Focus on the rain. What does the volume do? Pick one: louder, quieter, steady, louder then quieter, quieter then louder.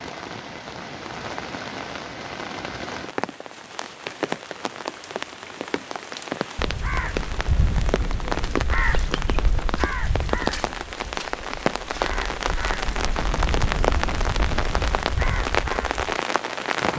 louder.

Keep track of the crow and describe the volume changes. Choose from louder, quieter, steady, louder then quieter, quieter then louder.
quieter then louder.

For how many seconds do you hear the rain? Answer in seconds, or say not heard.
17 s.